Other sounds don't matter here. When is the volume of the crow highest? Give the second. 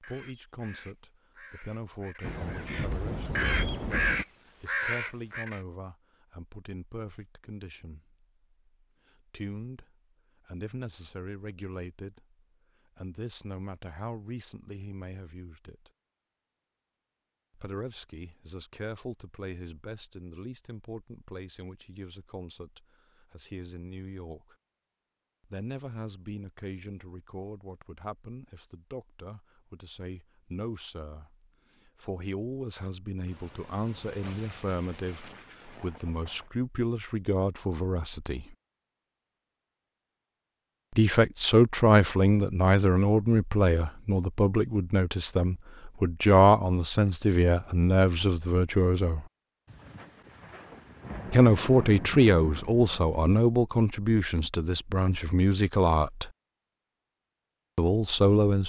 4 s.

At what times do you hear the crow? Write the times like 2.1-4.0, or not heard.
0.0-5.6.